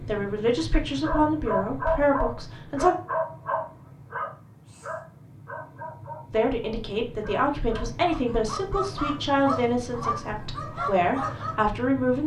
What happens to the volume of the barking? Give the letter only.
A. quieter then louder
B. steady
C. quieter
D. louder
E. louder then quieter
A.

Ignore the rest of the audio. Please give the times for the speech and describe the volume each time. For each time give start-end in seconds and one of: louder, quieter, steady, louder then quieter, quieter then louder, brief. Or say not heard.
0.0-3.0 brief
6.3-12.2 quieter then louder.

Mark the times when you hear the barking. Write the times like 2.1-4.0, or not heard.
1.0-11.6.